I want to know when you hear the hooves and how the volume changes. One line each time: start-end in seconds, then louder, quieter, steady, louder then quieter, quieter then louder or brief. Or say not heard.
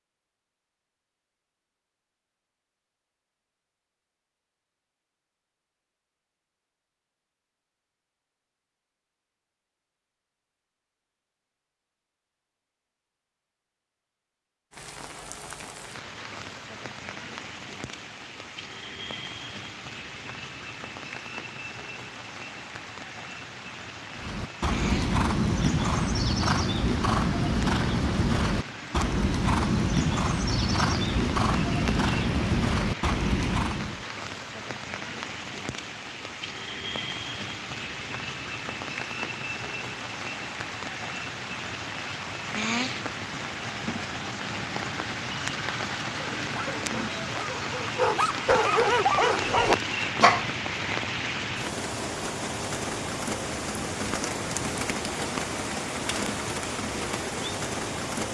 24.1-34.0 steady.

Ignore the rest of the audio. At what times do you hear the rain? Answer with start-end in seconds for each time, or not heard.
14.7-58.3.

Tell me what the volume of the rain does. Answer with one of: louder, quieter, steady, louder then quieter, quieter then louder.
louder.